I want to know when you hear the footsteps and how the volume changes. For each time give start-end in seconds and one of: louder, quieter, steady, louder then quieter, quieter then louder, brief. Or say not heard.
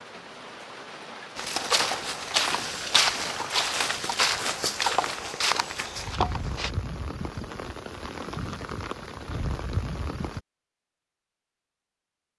1.4-6.8 steady.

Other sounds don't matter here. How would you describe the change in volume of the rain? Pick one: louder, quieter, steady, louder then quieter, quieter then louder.
louder.